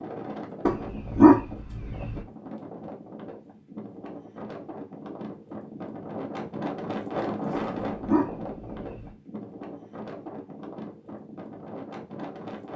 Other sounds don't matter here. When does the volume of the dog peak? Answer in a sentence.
The loudest moment of the dog is at 1 second.